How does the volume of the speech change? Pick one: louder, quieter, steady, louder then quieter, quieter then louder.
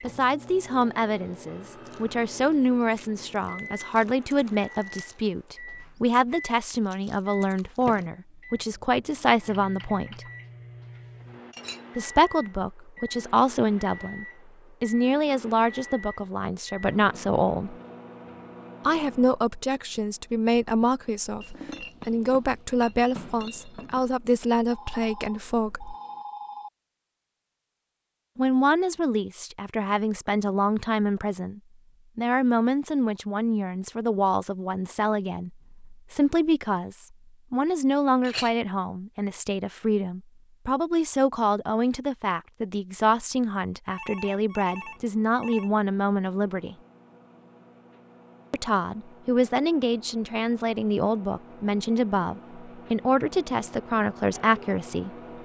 steady.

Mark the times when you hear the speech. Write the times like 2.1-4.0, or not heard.
0.0-10.2, 11.9-17.8, 18.9-25.9, 28.4-46.8, 48.5-55.1.